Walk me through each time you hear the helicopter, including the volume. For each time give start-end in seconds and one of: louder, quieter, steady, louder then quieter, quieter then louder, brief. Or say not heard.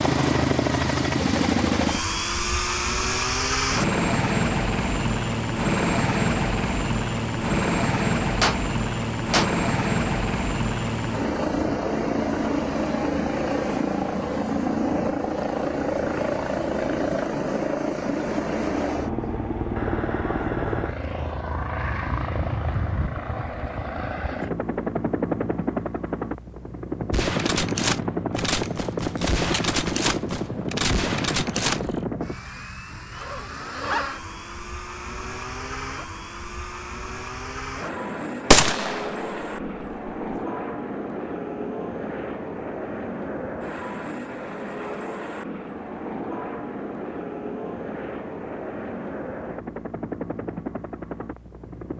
0.0-51.9 quieter.